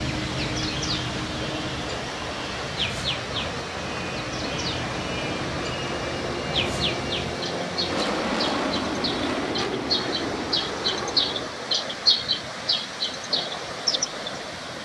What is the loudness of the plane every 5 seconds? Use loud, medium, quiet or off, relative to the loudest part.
medium, loud, loud.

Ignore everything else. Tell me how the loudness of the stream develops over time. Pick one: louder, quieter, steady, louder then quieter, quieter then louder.
steady.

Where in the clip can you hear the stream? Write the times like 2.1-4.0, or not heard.
0.0-14.8.